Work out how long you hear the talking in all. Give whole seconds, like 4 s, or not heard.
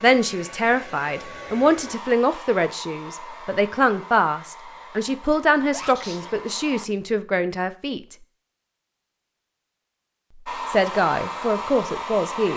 10 s.